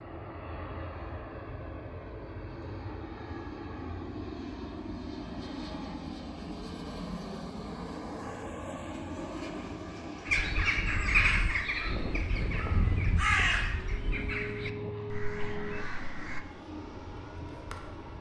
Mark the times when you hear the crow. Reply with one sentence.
The crow can be heard from 10.2 to 16.4 s.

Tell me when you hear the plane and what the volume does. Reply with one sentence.
You can hear the plane from 0.0 to 18.1 s, at a steady volume.